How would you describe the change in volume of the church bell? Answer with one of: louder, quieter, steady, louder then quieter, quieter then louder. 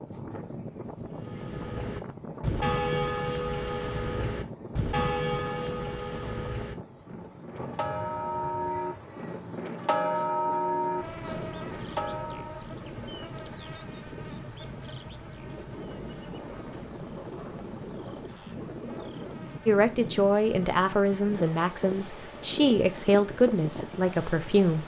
quieter then louder.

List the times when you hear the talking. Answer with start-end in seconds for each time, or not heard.
19.6-24.8.